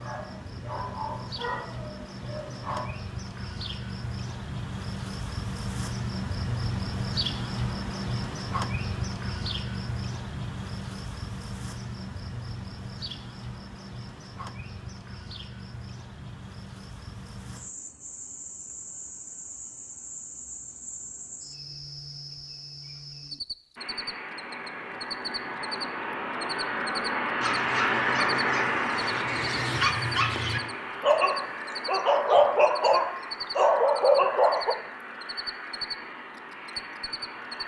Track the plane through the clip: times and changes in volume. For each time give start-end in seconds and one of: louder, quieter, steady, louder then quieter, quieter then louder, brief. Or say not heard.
23.8-37.6 louder then quieter.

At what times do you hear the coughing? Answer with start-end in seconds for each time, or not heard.
not heard.